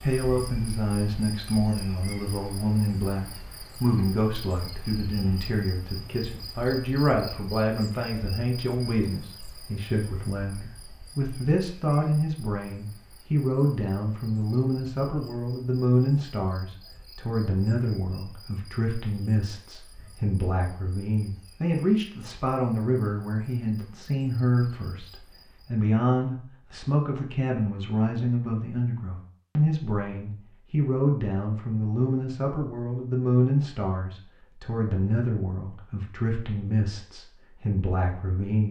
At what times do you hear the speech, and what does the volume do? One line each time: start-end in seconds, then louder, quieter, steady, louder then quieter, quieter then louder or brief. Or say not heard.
0.0-38.6 steady.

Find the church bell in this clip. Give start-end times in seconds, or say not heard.
not heard.